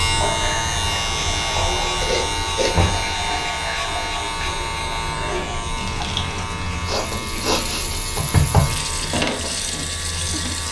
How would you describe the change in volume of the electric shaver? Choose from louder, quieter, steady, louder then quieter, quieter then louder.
quieter.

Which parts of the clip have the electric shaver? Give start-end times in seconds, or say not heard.
0.0-10.6.